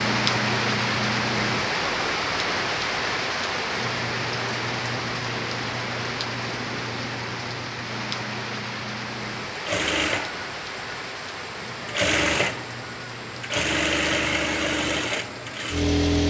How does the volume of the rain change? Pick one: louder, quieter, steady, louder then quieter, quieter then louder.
quieter.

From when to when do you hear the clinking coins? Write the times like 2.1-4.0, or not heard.
not heard.